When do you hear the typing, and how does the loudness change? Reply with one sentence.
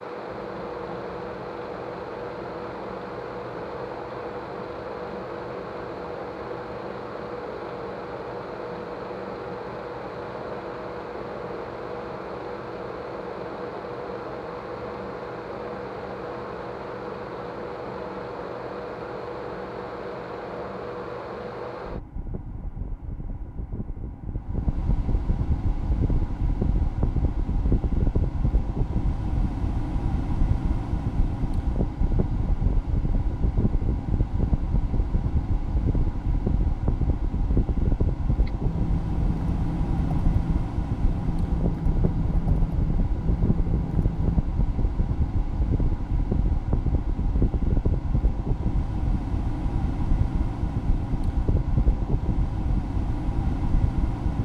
You can hear the typing from 38.5 to 44.4 s, at a steady volume.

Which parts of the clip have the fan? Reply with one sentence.
You can hear the fan from 0.0 to 54.4 s.